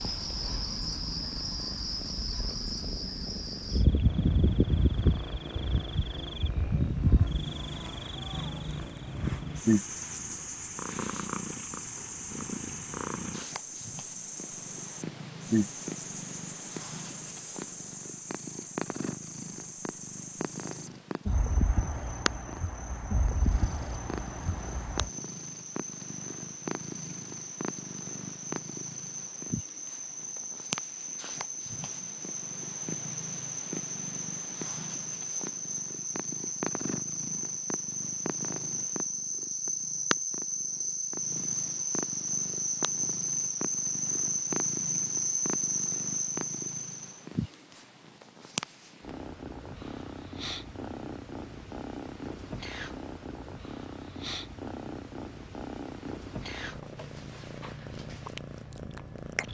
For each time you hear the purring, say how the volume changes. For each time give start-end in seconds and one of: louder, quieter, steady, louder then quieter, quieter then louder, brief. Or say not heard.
0.0-59.4 steady.